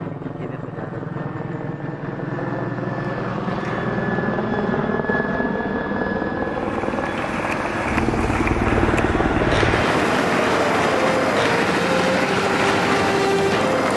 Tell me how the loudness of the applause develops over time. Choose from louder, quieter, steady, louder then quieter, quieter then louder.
steady.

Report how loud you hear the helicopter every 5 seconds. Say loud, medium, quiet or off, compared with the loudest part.
medium, loud, loud.